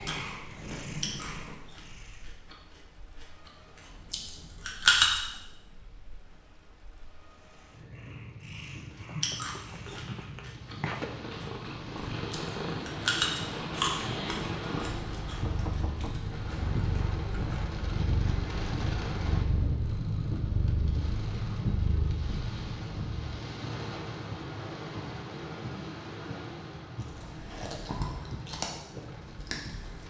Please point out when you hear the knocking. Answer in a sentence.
The knocking can be heard from 8.9 to 10.3 s and from 15.2 to 16.3 s.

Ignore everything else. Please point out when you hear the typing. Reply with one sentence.
You can't hear the typing here.